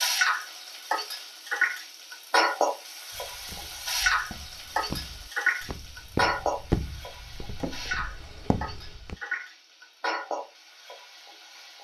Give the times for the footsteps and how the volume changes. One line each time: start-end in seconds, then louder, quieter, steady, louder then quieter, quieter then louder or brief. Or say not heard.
3.1-9.2 louder then quieter.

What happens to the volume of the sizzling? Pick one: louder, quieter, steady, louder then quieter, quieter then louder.
quieter.